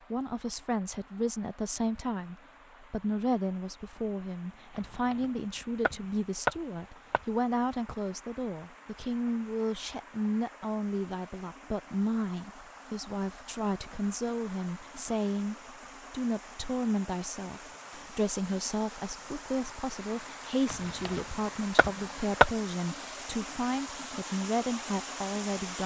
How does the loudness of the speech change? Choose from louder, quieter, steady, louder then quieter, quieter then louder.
steady.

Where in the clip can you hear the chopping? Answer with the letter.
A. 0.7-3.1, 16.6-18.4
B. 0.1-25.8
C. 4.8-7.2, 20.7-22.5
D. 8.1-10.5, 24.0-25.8
C.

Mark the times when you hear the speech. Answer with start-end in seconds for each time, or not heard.
0.1-25.8.